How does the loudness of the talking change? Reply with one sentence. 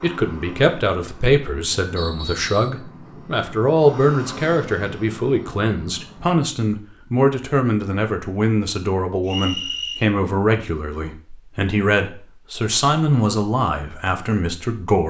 The volume of the talking stays about the same.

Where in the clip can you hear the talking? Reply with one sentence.
The talking can be heard from 0.0 to 15.0 s.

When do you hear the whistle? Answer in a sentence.
You can hear the whistle from 1.9 to 2.8 s and from 9.2 to 10.0 s.